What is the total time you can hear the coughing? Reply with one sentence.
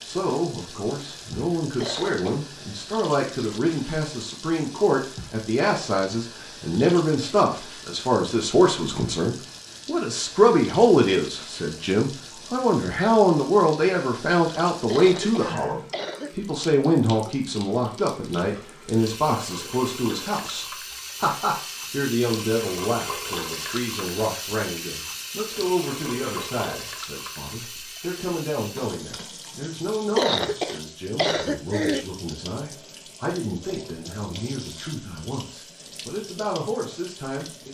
The coughing can be heard for 4 seconds in total.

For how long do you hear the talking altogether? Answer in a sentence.
The talking can be heard for 38 seconds in total.